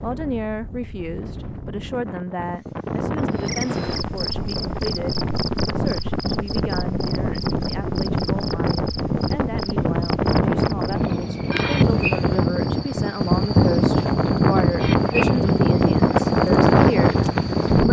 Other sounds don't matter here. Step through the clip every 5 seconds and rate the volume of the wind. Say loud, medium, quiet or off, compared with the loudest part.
quiet, medium, loud, loud.